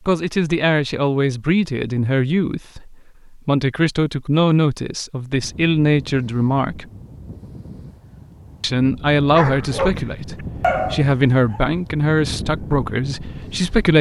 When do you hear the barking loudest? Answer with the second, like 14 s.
11 s.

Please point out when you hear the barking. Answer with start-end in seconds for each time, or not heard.
9.2-11.6.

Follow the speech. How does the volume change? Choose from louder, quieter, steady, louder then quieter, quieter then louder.
steady.